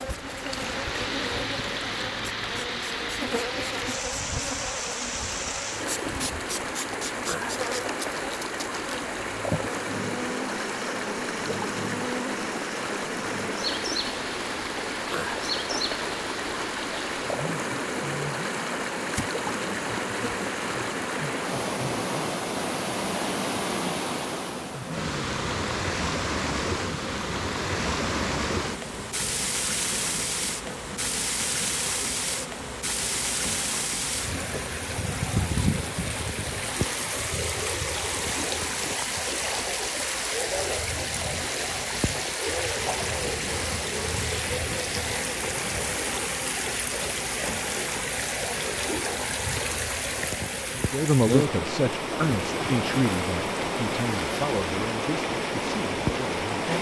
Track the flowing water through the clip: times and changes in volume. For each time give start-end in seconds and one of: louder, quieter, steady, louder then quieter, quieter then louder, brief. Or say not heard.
0.0-56.7 steady.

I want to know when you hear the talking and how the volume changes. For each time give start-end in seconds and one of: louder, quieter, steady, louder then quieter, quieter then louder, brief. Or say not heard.
50.9-56.5 quieter.